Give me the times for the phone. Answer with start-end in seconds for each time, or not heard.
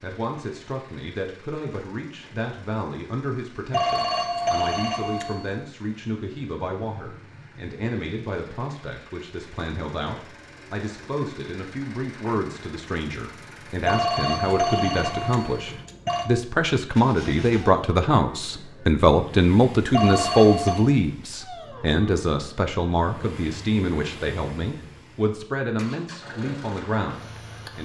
3.7-5.5, 13.8-16.3, 19.9-20.9.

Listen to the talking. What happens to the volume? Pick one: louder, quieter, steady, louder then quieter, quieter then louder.
louder then quieter.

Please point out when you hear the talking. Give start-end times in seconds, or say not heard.
0.0-27.8.